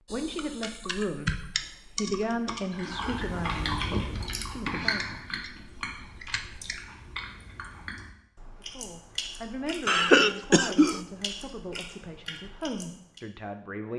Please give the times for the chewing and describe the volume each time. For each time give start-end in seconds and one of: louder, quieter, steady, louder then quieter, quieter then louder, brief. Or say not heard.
2.7-13.2 quieter.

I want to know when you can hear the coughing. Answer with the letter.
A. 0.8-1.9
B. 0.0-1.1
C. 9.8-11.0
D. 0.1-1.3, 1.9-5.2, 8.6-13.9
C.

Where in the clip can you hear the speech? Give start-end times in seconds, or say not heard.
0.1-1.3, 1.9-5.2, 8.6-13.9.